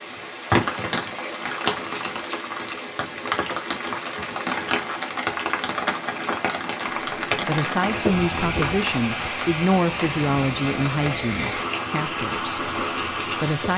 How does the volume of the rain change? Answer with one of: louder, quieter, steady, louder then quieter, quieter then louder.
steady.